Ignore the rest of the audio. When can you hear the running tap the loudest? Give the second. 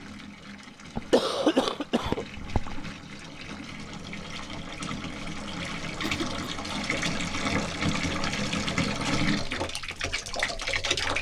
9 s.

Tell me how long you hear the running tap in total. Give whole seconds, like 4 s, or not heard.
11 s.